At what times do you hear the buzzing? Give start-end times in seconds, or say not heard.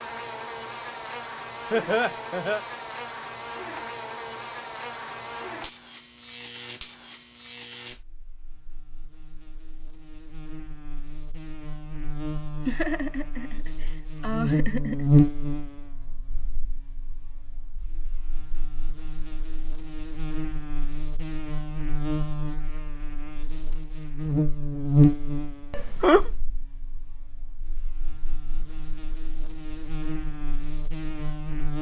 0.0-31.7.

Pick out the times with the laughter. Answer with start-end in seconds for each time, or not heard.
1.7-2.6, 12.7-15.2, 25.7-26.3.